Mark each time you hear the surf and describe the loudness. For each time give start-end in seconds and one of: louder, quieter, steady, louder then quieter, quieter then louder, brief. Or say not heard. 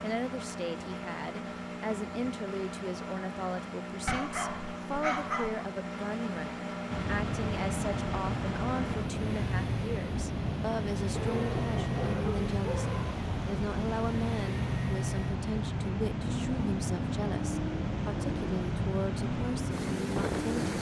6.9-20.7 steady.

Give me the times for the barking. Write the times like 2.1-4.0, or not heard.
4.0-5.7, 11.2-13.2.